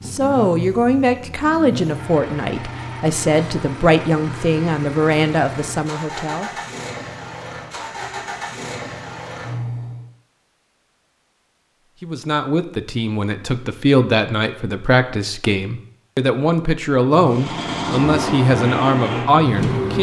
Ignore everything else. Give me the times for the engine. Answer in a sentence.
The engine can be heard from 0.0 to 10.1 s and from 17.1 to 19.9 s.